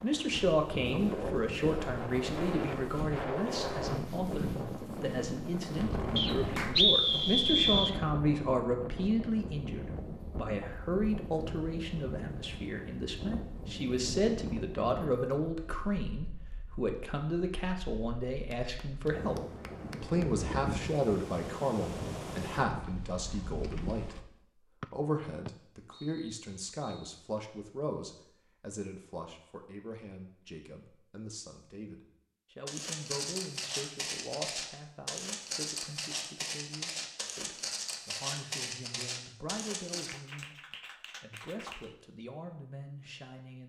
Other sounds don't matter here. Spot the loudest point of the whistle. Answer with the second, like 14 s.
7 s.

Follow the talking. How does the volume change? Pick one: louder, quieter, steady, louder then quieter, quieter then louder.
quieter.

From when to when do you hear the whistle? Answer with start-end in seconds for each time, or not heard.
6.2-8.0, 24.8-26.9.